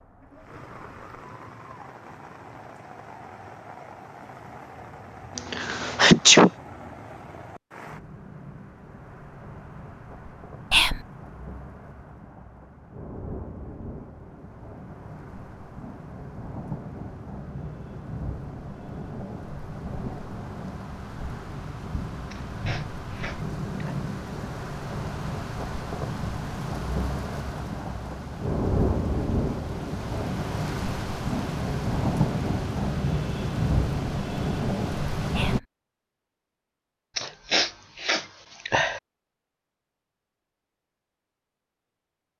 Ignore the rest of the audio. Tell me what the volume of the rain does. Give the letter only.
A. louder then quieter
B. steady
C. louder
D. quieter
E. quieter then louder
C.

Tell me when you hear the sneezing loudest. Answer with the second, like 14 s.
6 s.